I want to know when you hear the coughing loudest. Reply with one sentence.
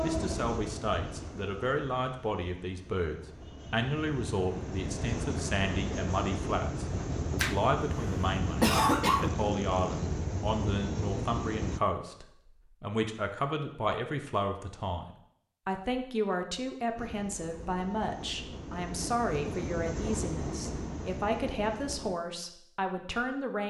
The volume of the coughing peaks at 9 seconds.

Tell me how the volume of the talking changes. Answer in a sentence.
The volume of the talking stays about the same.